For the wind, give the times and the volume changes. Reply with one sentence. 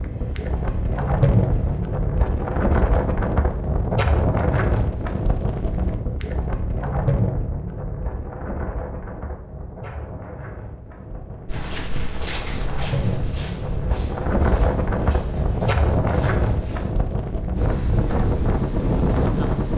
You can hear the wind from 0.0 to 19.7 s, getting quieter then louder.